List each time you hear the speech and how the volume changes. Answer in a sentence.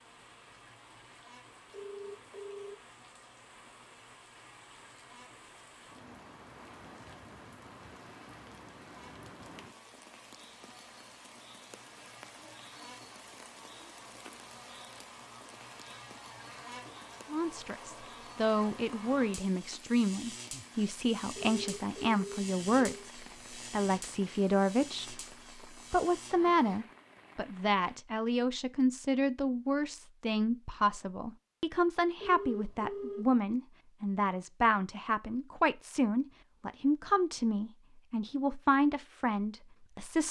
You can hear the speech from 17.3 to 40.2 s, at a steady volume.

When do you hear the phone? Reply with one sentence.
You can hear the phone from 1.7 to 2.8 s, from 21.4 to 23.1 s and from 32.2 to 33.3 s.